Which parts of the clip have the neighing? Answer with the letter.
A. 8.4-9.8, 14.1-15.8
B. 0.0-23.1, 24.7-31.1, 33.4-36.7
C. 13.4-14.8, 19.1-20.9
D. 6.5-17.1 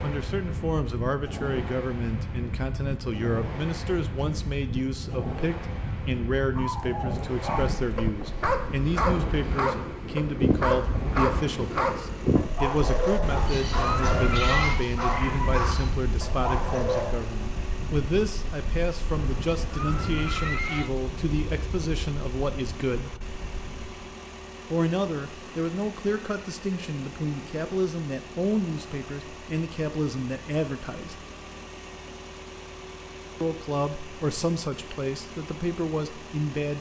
C.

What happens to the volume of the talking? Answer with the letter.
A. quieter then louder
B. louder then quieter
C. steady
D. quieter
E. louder
C.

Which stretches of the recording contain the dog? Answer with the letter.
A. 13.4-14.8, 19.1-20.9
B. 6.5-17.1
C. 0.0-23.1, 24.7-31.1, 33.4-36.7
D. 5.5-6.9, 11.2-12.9
B.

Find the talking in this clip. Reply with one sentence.
You can hear the talking from 0.0 to 23.1 s, from 24.7 to 31.1 s and from 33.4 to 36.7 s.